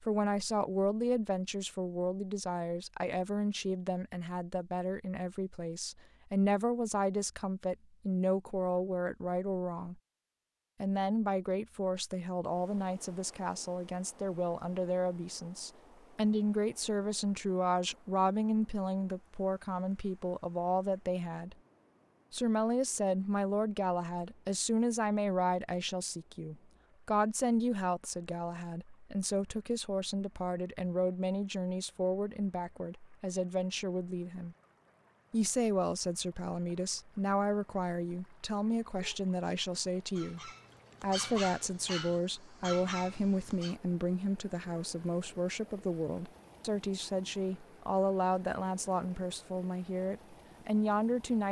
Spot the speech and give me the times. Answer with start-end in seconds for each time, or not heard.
0.0-10.0, 10.8-21.6, 22.3-34.5, 35.3-51.4.